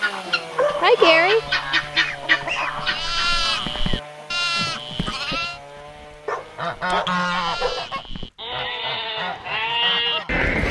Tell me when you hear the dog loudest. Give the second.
1 s.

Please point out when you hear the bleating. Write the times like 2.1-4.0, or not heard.
0.0-5.5, 7.2-10.6.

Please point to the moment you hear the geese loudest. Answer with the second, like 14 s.
1 s.